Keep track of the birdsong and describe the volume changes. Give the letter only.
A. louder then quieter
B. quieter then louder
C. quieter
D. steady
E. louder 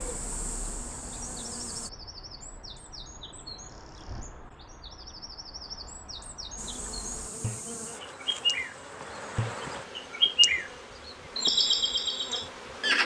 E.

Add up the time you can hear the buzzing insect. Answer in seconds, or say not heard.
8 s.